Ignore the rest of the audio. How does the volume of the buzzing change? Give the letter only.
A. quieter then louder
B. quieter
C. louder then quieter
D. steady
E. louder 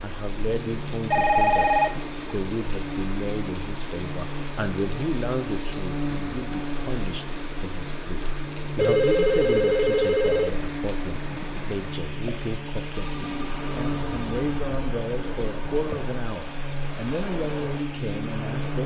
D.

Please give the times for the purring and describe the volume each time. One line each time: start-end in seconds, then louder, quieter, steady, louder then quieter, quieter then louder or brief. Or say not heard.
not heard.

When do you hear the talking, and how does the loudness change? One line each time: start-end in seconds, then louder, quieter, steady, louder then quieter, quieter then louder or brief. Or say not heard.
0.0-18.8 steady.